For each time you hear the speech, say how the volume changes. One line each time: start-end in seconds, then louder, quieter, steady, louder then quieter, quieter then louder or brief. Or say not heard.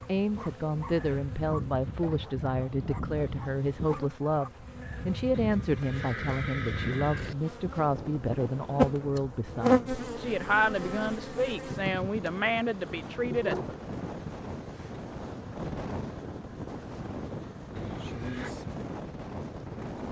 0.1-13.8 steady.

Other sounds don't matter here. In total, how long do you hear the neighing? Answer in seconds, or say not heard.
3 s.